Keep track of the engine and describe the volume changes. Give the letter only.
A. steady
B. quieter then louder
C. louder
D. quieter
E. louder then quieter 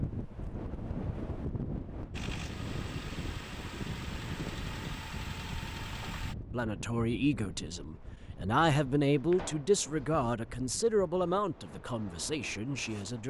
A.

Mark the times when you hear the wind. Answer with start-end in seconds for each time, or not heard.
0.0-13.2.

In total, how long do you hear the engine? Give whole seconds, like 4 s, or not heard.
4 s.